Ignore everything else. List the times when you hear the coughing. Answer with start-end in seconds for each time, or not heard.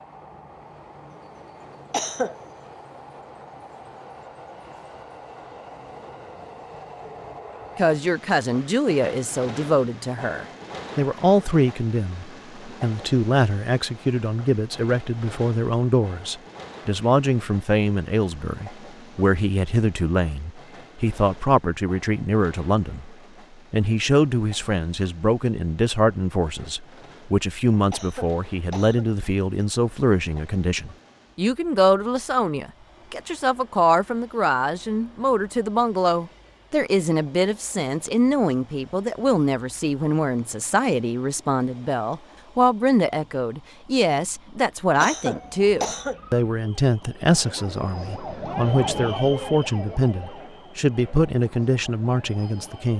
1.9-2.4, 27.9-29.1, 45.0-46.2.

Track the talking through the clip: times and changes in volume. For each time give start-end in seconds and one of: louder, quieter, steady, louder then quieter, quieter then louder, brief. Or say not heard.
7.8-52.9 steady.